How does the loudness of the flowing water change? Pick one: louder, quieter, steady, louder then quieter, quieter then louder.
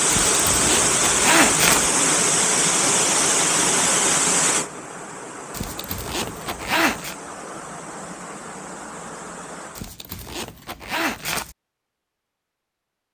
quieter.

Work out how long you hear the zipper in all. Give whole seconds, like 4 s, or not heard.
5 s.